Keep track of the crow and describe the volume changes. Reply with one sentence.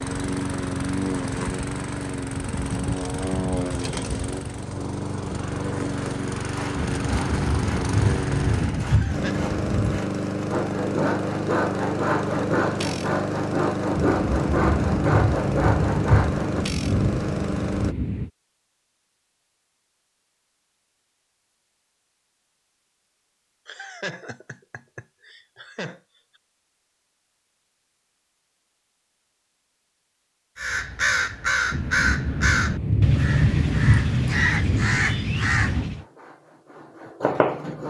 The loudness of the crow stays about the same.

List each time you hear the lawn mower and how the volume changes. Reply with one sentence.
You can hear the lawn mower from 0.0 to 17.9 s, at a steady volume.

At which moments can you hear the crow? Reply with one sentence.
The crow can be heard from 30.6 to 36.0 s.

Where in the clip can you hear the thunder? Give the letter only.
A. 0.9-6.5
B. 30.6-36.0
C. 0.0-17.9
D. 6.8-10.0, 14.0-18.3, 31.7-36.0
D.